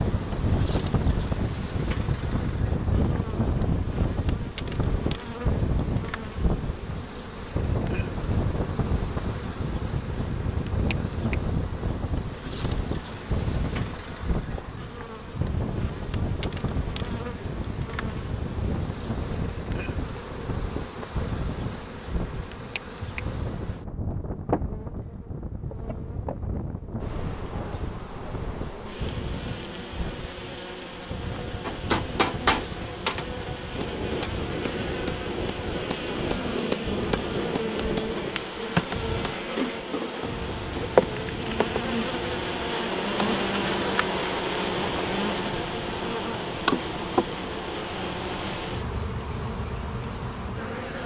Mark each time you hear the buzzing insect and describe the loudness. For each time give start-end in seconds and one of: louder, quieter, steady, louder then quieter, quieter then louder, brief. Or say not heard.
0.0-51.0 louder.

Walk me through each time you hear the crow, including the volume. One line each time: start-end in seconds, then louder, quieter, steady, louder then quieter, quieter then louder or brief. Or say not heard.
not heard.